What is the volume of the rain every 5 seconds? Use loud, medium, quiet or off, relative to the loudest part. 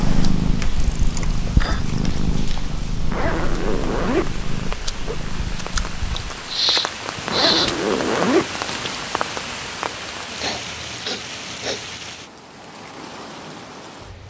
medium, loud, medium.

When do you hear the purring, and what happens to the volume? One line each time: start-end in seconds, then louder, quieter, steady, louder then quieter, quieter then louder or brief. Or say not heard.
0.0-6.6 quieter.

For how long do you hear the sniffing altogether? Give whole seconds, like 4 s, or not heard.
4 s.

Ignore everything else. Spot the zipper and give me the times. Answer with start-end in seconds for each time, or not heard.
3.0-5.2, 7.2-8.9.